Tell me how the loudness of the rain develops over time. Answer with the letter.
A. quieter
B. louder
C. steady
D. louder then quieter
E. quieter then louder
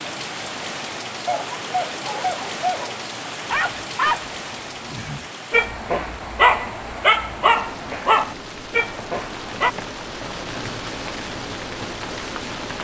E.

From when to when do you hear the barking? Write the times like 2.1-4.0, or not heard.
1.2-9.8.